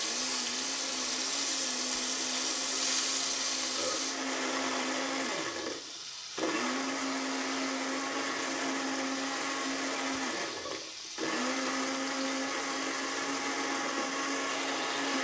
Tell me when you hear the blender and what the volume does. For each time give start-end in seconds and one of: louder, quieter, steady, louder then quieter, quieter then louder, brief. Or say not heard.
0.0-15.1 louder.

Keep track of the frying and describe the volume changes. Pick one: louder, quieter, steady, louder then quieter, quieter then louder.
quieter.